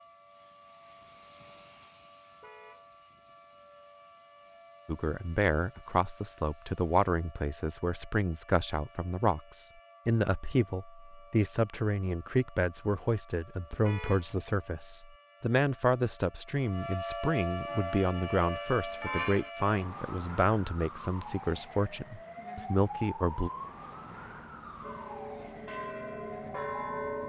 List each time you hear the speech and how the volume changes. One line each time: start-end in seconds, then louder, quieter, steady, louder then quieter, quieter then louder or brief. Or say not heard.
4.8-23.5 steady.